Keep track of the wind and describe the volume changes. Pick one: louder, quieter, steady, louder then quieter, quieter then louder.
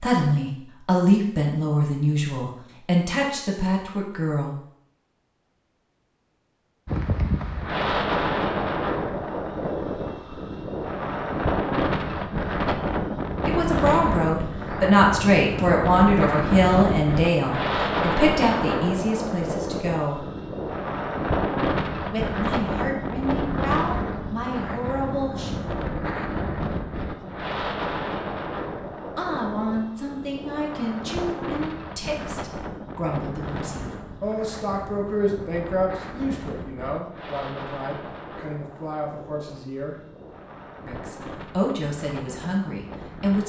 quieter.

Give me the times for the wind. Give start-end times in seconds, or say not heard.
6.8-43.4.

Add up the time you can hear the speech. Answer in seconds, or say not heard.
28 s.